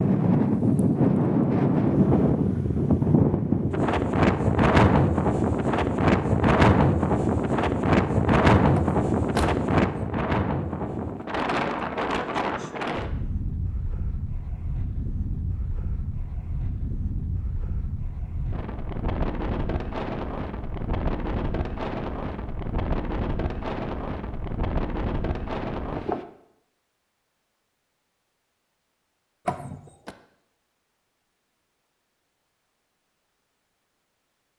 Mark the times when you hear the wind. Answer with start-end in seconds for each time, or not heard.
0.0-26.2.